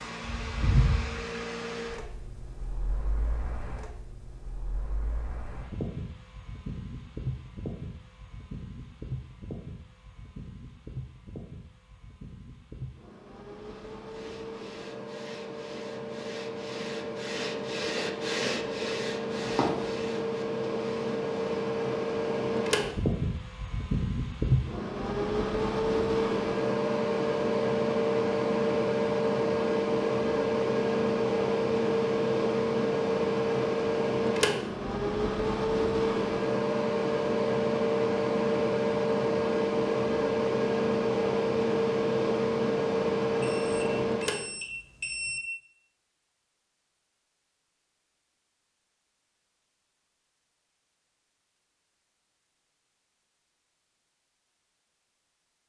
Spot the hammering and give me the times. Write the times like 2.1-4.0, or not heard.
not heard.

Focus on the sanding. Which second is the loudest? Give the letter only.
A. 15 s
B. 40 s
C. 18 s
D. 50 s
C.